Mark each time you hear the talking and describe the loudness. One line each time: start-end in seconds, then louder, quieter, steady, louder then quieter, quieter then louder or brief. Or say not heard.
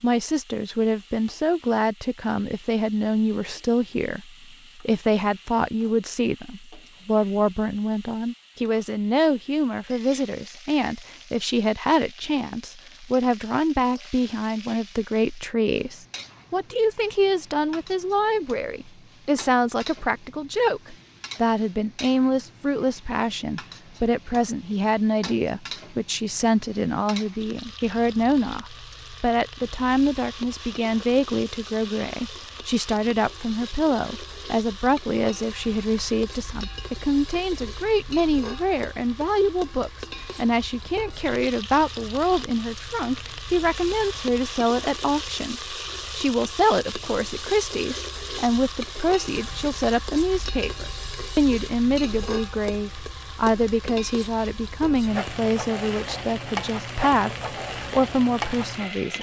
0.0-59.1 steady.